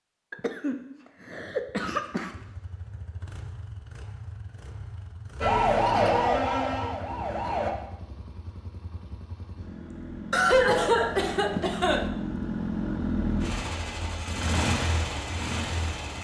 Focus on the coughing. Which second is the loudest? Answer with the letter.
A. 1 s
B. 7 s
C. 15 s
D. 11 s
D.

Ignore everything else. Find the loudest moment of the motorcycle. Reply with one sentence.
The loudest moment of the motorcycle is at 13 seconds.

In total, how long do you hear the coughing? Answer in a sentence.
The coughing can be heard for 4 seconds in total.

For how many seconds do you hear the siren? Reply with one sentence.
You can hear the siren for 2 seconds altogether.